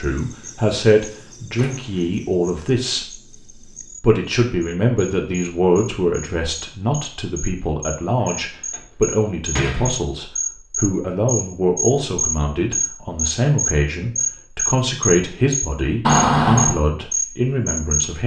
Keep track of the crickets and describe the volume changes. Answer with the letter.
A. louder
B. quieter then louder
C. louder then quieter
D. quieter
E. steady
A.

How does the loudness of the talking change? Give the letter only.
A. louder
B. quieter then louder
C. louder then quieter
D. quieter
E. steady
E.